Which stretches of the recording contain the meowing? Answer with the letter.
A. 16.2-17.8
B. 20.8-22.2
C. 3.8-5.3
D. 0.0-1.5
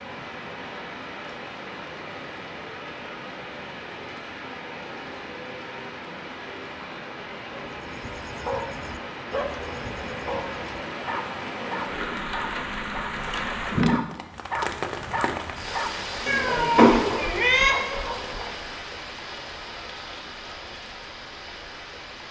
A.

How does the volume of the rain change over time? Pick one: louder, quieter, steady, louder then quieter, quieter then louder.
louder then quieter.